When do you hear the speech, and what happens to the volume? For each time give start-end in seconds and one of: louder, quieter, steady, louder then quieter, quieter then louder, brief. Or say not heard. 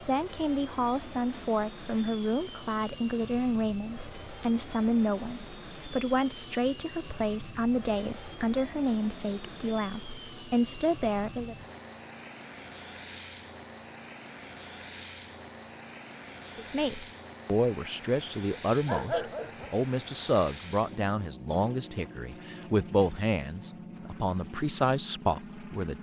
0.0-11.6 steady
16.6-25.9 steady.